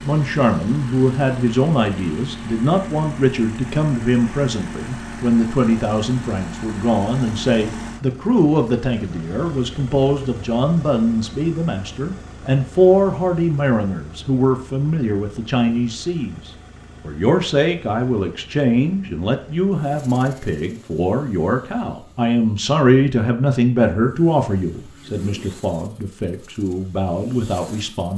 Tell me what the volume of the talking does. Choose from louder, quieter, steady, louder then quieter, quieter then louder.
steady.